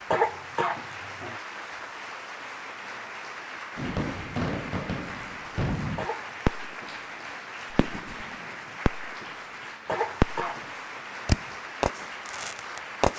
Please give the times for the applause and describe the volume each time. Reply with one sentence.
The applause can be heard from 0.0 to 13.1 s, at a steady volume.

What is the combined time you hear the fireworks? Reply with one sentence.
You can hear the fireworks for 7 seconds altogether.